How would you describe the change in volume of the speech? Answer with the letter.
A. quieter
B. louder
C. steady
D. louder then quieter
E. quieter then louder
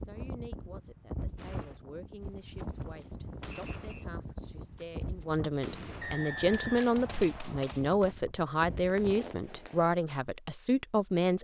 B.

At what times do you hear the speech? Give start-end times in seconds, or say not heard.
0.0-11.4.